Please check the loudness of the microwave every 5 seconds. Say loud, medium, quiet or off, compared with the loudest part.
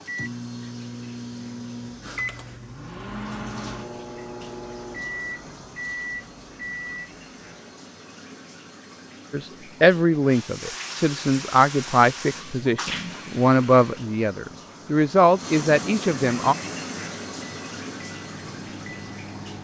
loud, loud, off, medium.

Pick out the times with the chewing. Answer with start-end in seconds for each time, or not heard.
not heard.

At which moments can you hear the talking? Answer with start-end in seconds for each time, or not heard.
9.3-16.6.